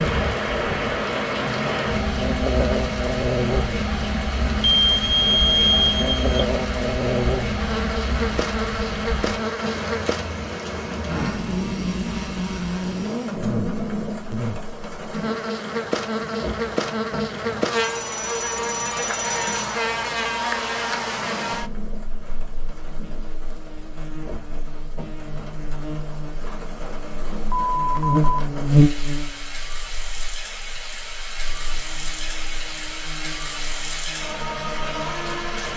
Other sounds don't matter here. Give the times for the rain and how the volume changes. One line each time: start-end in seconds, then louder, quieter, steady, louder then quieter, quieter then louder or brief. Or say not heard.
0.0-35.7 quieter then louder.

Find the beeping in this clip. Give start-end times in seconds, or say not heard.
4.6-6.5, 18.0-19.6, 27.5-28.4.